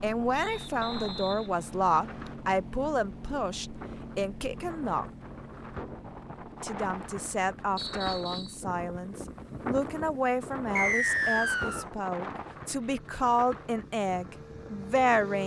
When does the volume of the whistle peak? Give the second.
11 s.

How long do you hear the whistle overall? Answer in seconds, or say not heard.
4 s.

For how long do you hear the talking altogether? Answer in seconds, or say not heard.
14 s.